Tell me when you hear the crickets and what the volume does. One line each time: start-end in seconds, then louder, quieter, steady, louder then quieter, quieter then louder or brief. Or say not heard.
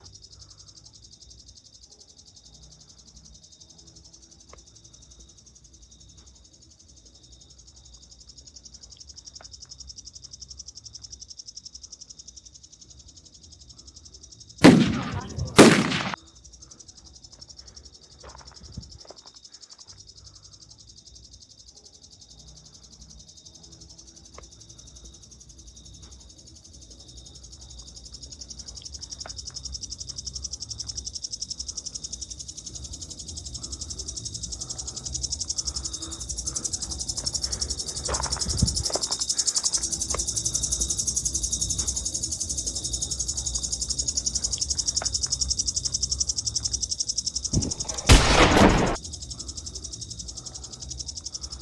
0.0-51.5 louder.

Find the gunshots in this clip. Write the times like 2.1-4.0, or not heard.
14.6-16.1, 47.5-49.0.